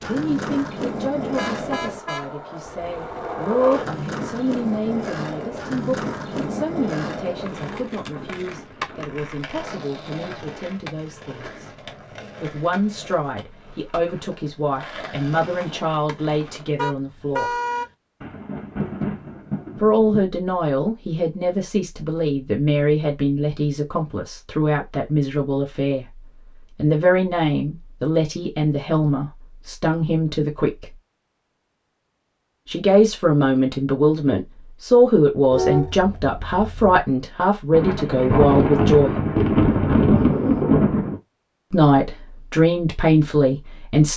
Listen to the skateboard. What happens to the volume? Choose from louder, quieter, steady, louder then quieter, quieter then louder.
quieter.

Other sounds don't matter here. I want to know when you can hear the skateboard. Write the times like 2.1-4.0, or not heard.
0.0-16.8.